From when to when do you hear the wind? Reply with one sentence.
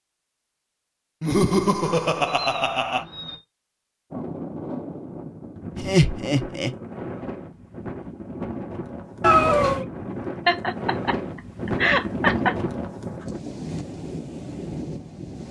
You can hear the wind from 4.1 to 15.4 s.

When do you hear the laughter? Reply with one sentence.
You can hear the laughter from 1.2 to 3.0 s, from 5.8 to 6.8 s and from 10.4 to 12.6 s.